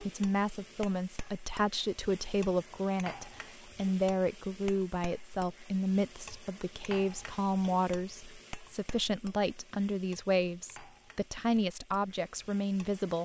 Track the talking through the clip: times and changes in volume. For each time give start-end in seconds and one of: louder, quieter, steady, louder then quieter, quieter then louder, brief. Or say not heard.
0.0-13.2 steady.